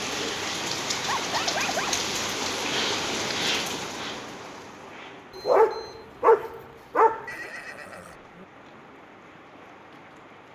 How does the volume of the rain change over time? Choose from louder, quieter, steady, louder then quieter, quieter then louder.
quieter.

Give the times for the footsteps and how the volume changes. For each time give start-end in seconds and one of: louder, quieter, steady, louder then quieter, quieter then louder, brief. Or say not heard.
not heard.